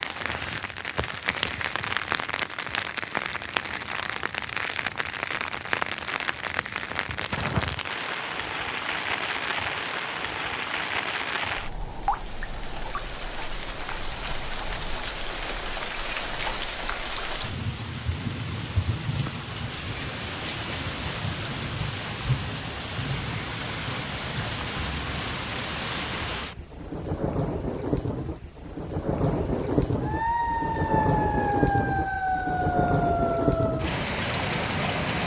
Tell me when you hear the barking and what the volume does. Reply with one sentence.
The barking can't be heard in this clip.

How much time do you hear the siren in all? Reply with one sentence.
The siren can be heard for 4 seconds in total.